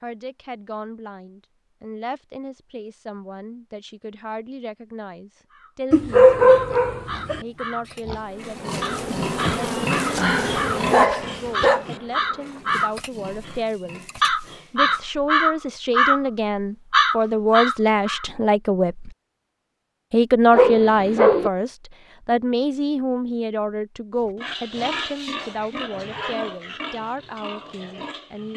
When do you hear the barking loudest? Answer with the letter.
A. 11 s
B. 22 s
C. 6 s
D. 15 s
C.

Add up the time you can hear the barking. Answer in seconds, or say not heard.
4 s.